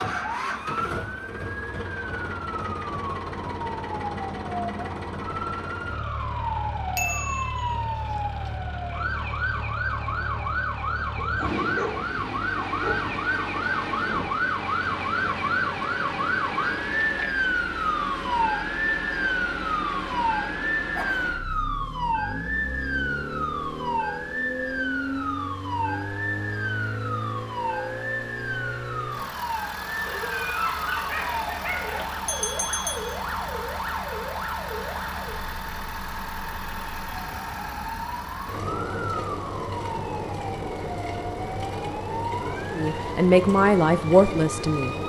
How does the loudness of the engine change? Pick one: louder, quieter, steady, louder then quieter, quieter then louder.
steady.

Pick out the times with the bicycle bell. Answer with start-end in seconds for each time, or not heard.
7.0-8.5, 32.2-33.1.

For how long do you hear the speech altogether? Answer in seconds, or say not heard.
2 s.